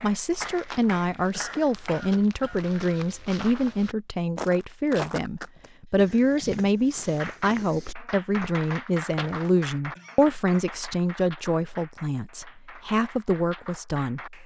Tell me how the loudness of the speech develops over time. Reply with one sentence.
The volume of the speech stays about the same.